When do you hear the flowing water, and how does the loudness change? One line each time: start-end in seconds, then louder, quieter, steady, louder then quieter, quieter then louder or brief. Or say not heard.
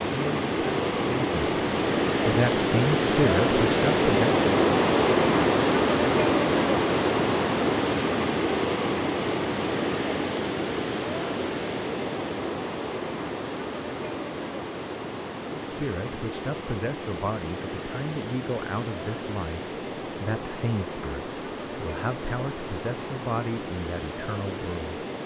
0.0-25.2 quieter.